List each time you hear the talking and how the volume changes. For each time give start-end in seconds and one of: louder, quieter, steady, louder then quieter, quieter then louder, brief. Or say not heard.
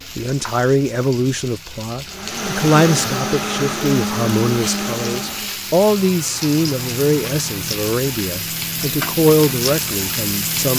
0.1-10.7 steady.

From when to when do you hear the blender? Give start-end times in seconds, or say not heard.
2.0-5.6.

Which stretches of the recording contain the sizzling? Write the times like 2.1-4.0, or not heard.
0.0-10.7.